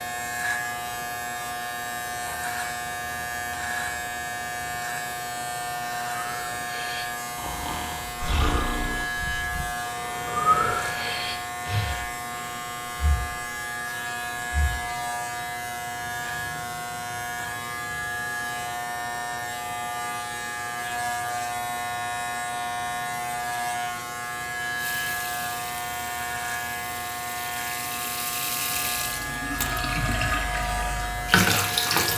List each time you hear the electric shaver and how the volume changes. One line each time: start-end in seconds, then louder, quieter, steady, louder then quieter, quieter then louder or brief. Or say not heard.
0.0-32.1 steady.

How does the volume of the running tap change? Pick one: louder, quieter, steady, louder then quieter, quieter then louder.
louder.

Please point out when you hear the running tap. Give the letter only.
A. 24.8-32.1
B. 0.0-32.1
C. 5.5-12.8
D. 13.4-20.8
A.